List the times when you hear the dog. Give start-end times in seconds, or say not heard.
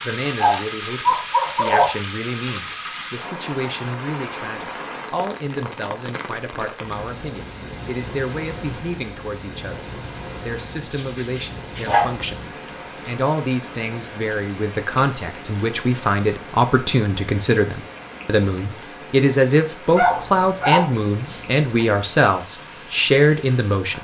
0.2-1.9, 10.9-12.3, 19.9-21.9.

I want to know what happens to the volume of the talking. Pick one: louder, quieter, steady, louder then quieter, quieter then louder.
louder.